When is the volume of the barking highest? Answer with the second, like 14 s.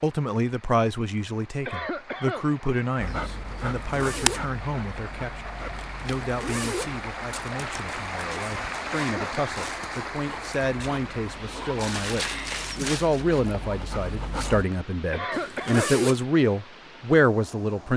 4 s.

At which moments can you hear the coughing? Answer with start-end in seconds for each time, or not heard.
1.6-2.5, 8.9-9.4, 15.1-15.9.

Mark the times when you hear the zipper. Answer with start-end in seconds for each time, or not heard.
3.8-4.5, 6.2-7.0, 15.3-16.2.